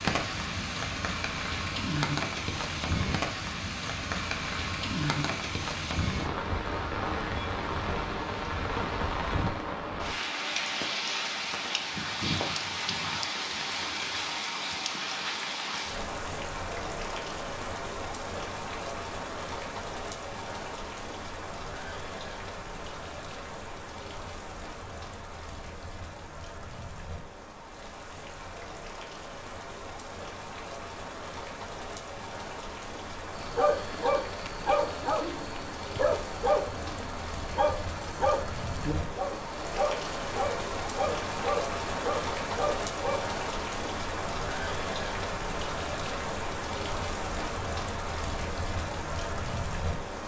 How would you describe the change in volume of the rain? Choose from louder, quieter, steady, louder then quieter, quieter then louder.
quieter then louder.